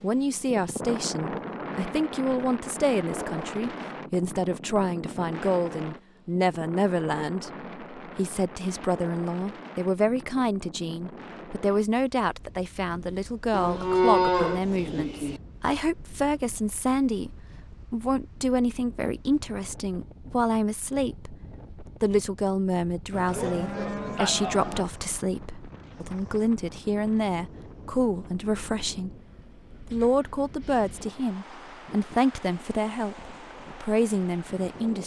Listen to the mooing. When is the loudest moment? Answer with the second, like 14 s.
14 s.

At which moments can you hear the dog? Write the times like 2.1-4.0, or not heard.
not heard.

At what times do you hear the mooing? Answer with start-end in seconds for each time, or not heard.
13.5-15.4, 23.1-24.9.